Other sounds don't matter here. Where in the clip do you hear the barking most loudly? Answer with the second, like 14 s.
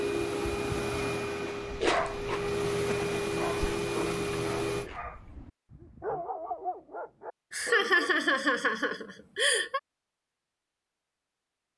2 s.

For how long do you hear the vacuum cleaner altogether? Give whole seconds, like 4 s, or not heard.
5 s.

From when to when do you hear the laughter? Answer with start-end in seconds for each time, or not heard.
2.8-3.8, 7.5-9.8.